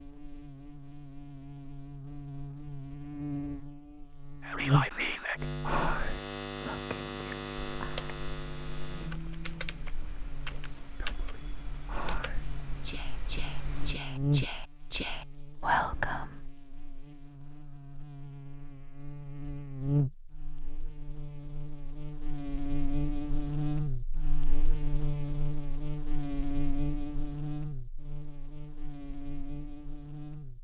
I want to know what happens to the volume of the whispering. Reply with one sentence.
The loudness of the whispering goes down, then up.